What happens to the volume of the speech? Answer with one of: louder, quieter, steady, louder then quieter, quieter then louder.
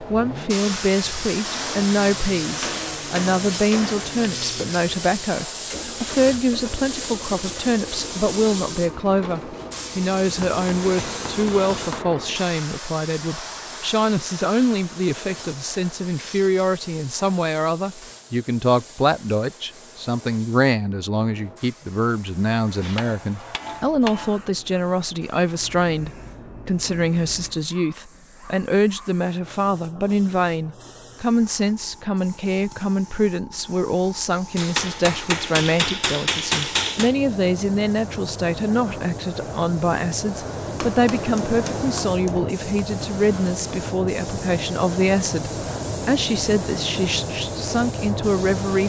steady.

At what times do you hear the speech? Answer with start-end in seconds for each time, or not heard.
0.0-48.8.